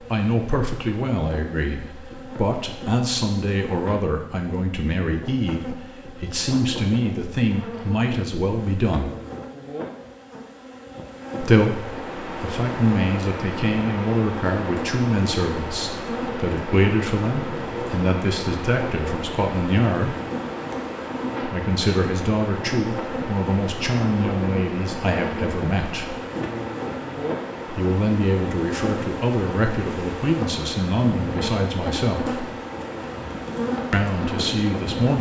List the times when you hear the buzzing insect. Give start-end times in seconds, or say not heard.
0.0-35.1.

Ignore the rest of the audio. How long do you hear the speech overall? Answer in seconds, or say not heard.
29 s.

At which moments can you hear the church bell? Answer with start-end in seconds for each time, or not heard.
not heard.